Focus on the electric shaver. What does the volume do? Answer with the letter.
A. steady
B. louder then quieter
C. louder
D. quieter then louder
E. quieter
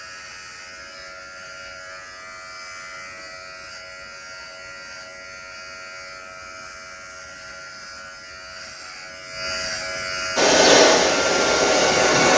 C.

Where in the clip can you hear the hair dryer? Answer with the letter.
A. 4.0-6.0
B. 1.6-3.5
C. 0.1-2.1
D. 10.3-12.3
D.